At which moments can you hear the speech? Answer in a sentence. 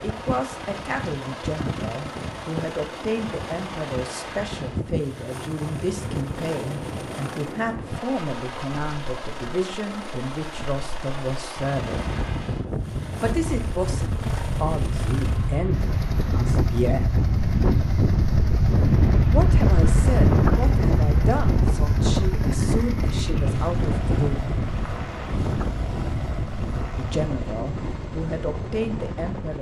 The speech can be heard from 0.0 to 12.1 s, from 13.2 to 17.1 s, from 19.3 to 24.6 s and from 26.9 to 29.5 s.